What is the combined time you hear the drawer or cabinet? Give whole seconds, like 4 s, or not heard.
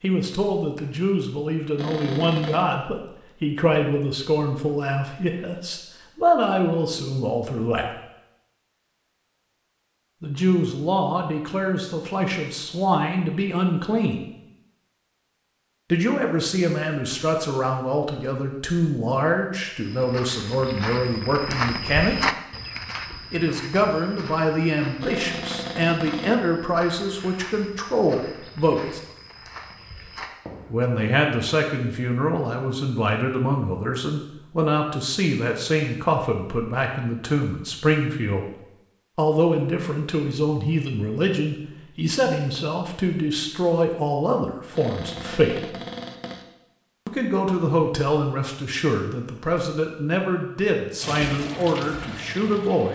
4 s.